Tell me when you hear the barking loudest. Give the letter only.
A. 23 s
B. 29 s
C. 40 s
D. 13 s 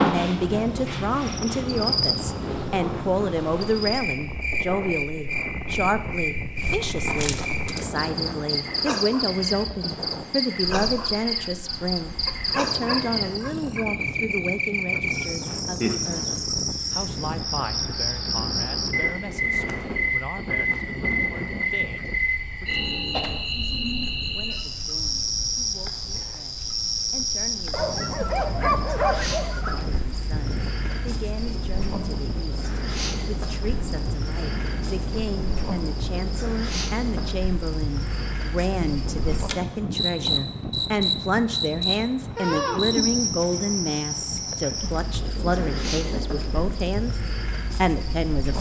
B.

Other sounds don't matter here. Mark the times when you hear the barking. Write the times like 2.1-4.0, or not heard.
12.2-13.8, 27.7-29.8.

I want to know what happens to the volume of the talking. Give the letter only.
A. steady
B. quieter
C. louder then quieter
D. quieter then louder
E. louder
D.